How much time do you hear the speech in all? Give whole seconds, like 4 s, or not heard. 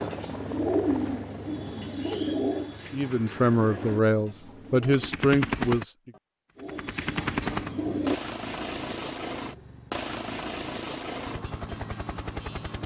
3 s.